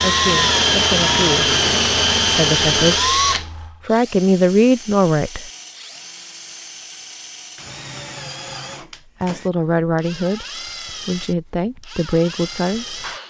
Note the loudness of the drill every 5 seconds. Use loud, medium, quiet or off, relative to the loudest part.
loud, quiet, quiet.